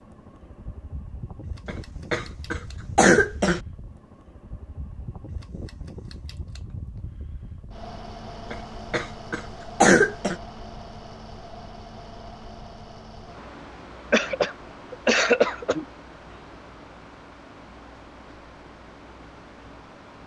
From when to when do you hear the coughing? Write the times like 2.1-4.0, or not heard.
1.6-3.6, 8.5-10.3, 14.1-15.8.